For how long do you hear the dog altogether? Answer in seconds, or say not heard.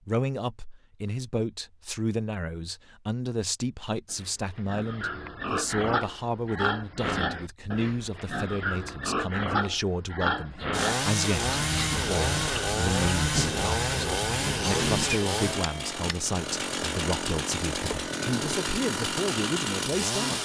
not heard.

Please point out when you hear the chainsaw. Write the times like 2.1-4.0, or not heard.
10.7-20.4.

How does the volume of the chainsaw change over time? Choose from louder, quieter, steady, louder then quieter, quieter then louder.
steady.